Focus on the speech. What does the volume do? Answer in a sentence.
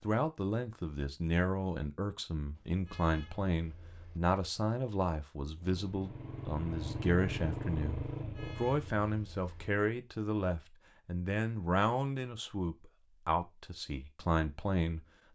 The loudness of the speech stays about the same.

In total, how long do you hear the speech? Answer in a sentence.
You can hear the speech for 15 seconds altogether.